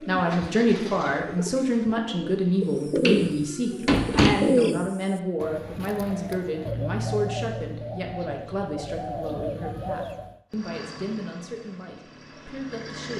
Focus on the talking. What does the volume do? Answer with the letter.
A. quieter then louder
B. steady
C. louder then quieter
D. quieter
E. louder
D.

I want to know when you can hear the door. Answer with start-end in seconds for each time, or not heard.
3.0-4.4.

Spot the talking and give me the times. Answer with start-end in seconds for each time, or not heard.
0.1-13.1.